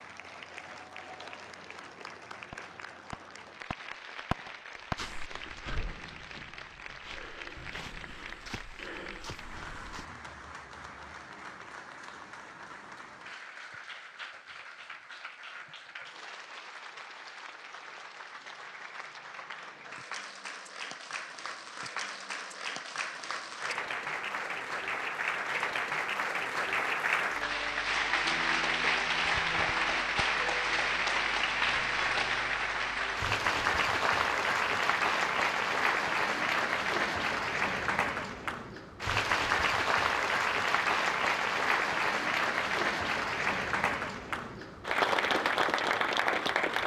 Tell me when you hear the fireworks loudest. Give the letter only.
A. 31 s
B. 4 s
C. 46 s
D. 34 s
B.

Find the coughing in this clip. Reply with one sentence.
You can't hear the coughing here.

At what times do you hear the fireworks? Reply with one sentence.
The fireworks can be heard from 2.5 to 8.2 s.